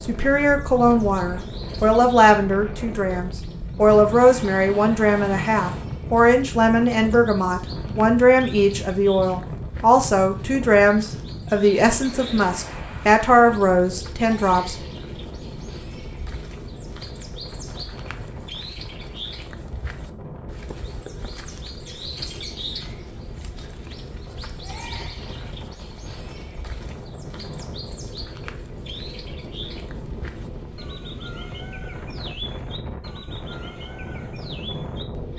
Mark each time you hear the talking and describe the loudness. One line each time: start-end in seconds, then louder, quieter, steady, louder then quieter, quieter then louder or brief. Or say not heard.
0.0-14.8 steady.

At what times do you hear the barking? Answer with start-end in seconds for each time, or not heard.
not heard.